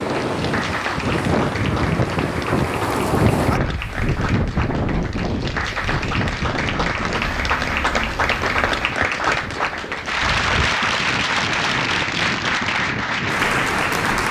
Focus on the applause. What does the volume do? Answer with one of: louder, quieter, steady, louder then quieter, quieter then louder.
louder.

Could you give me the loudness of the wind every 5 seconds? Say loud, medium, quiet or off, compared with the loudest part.
loud, medium, medium.